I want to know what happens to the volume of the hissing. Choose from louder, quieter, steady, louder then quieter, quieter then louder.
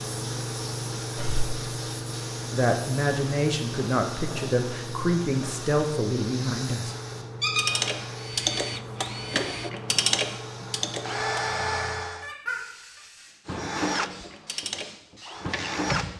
quieter.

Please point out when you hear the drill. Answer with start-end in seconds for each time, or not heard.
8.2-12.3, 13.4-16.1.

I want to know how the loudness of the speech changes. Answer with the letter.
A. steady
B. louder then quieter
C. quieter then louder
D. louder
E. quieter
A.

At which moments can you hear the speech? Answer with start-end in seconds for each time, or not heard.
2.5-7.0.